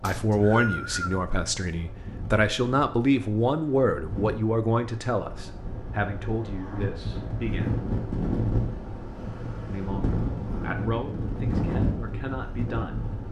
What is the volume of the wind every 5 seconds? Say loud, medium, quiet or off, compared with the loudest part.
medium, loud, loud.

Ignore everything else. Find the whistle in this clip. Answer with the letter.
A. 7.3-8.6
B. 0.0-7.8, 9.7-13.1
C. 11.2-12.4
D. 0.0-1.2
D.